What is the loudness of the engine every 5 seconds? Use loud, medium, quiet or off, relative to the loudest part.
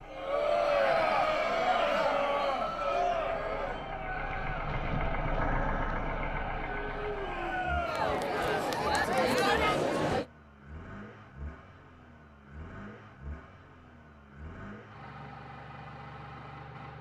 medium, loud, quiet, medium.